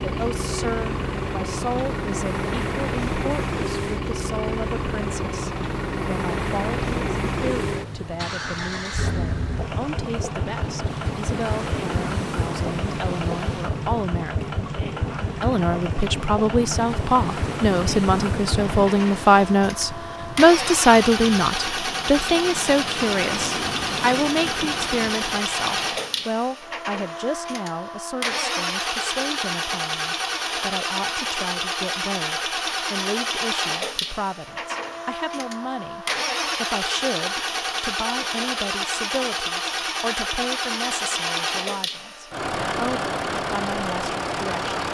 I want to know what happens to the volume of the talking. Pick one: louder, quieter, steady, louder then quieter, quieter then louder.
louder then quieter.